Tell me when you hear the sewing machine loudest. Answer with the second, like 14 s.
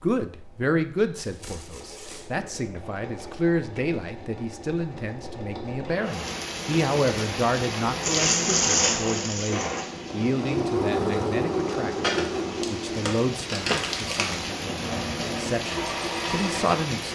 11 s.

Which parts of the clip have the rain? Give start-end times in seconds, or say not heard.
6.0-17.0.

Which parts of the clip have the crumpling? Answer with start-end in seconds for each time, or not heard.
1.1-2.3, 8.0-9.8, 12.0-14.4.